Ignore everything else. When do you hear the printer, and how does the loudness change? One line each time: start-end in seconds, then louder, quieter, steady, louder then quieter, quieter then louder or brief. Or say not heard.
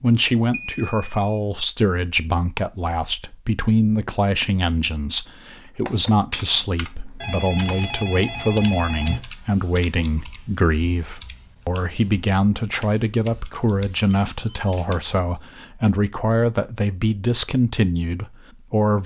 not heard.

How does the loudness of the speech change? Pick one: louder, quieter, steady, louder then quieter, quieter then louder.
steady.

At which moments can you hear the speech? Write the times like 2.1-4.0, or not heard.
0.0-19.0.